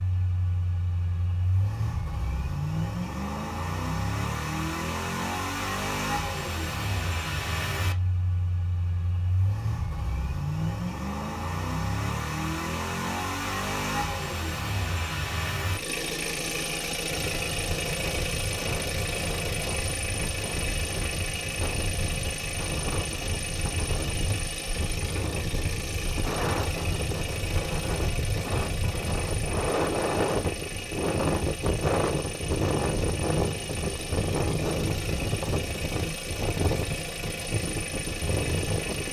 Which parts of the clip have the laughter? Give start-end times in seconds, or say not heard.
not heard.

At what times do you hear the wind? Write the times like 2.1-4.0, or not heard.
17.1-39.0.